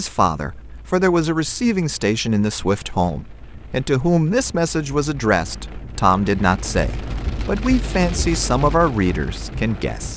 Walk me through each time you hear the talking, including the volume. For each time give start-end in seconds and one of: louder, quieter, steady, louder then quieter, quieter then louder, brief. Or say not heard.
0.0-10.1 steady.